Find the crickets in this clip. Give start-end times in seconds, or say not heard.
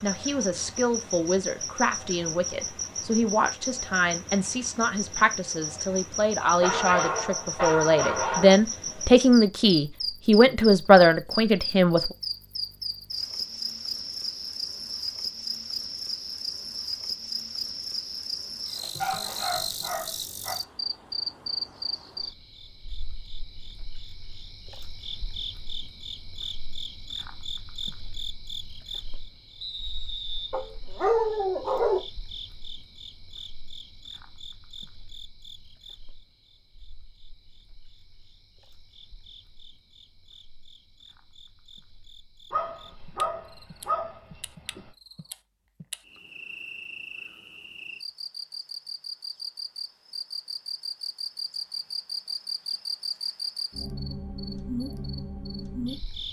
0.0-56.2.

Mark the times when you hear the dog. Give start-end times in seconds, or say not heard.
6.4-8.6, 19.0-20.6, 30.5-32.0, 42.5-44.9.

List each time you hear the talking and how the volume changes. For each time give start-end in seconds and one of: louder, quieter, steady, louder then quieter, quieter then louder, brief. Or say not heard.
0.0-12.1 louder.